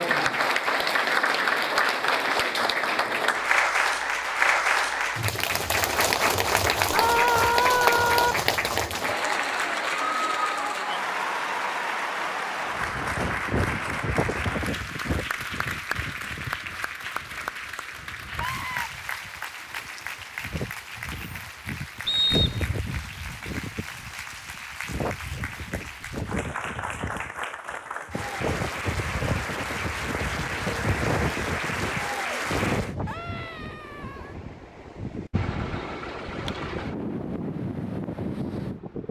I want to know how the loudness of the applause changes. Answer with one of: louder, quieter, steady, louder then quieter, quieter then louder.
quieter then louder.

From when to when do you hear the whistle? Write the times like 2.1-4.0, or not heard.
22.1-22.8.